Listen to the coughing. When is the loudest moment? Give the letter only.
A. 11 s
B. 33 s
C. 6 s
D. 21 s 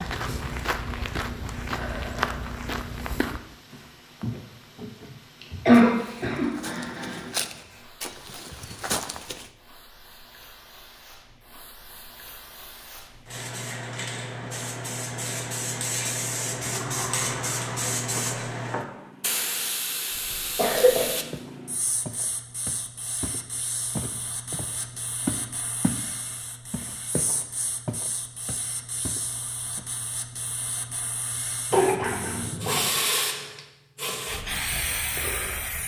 C.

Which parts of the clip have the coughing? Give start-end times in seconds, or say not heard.
5.4-7.4, 20.3-21.1, 31.7-32.9.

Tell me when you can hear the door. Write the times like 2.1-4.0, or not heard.
16.5-19.1.